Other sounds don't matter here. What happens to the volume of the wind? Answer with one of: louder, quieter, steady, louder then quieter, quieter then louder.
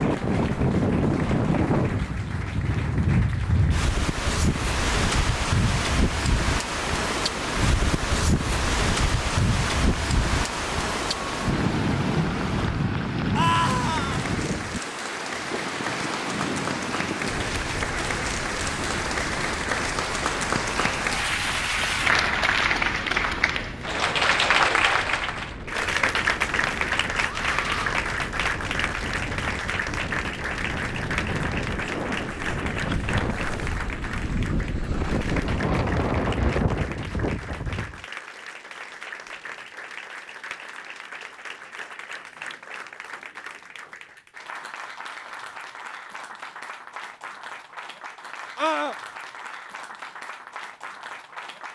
quieter then louder.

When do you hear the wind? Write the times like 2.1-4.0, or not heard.
0.0-38.0.